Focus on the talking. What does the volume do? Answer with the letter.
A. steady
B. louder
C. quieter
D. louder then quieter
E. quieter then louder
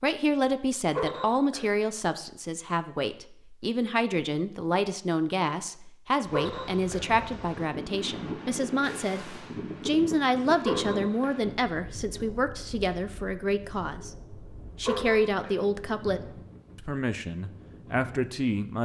A.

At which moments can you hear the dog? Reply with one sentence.
You can hear the dog from 0.9 to 1.7 s, from 6.3 to 7.0 s, from 10.7 to 11.4 s and from 14.8 to 15.6 s.